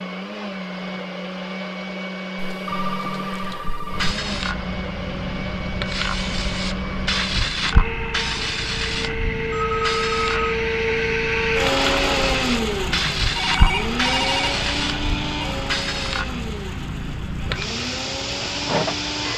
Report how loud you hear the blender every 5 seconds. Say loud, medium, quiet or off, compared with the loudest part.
medium, medium, loud, medium.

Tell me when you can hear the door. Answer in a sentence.
The door can't be heard in this clip.